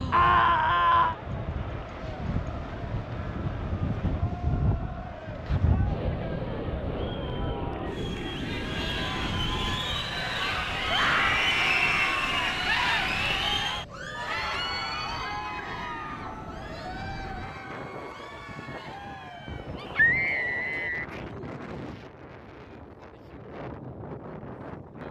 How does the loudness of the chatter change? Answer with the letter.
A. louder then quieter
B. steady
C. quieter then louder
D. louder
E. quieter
A.